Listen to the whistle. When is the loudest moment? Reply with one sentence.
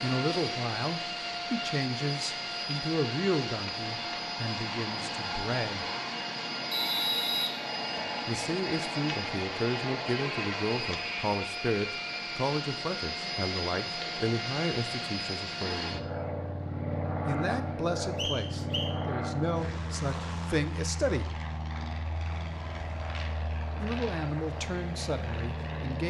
The loudest moment of the whistle is at 7 seconds.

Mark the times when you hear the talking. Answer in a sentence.
You can hear the talking from 0.0 to 5.8 s, from 8.2 to 16.1 s, from 17.2 to 21.4 s and from 23.8 to 26.0 s.